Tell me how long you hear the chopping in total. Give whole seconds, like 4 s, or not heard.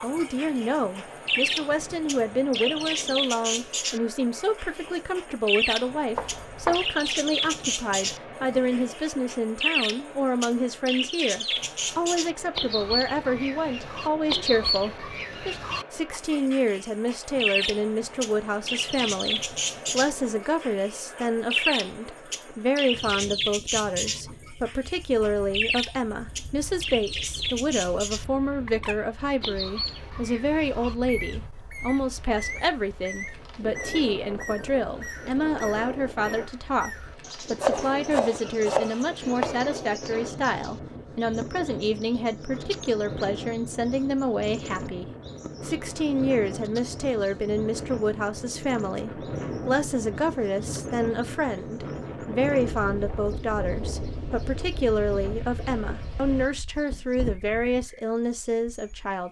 3 s.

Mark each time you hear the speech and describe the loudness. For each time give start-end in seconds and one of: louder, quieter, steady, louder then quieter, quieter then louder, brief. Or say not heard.
0.0-59.2 steady.